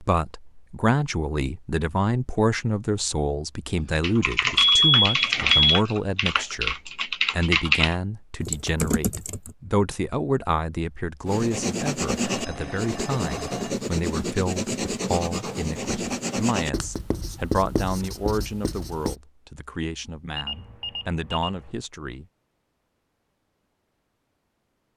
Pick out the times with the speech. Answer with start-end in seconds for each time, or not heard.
0.0-22.2.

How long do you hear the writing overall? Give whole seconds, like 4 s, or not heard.
8 s.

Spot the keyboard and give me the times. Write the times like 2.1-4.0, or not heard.
4.0-9.6.